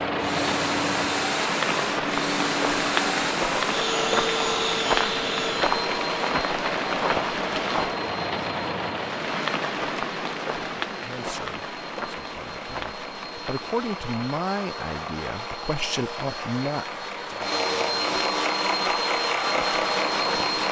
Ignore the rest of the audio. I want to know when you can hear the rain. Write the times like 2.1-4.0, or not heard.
0.0-20.6.